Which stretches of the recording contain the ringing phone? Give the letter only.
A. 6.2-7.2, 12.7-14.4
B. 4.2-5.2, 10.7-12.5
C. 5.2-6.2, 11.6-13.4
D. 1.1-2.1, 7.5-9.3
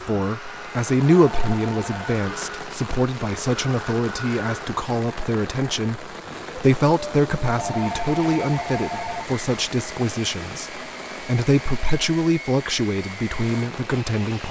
D.